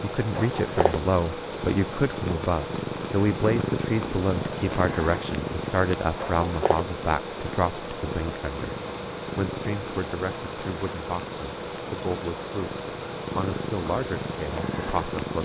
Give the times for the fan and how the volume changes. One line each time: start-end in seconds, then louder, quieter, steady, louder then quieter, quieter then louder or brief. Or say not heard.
0.0-15.3 steady.